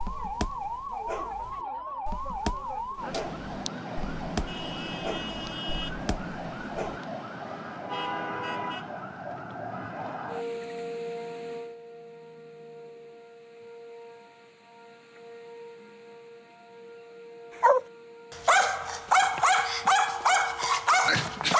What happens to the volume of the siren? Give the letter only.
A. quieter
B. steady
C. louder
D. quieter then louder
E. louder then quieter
A.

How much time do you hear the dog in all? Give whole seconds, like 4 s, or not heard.
11 s.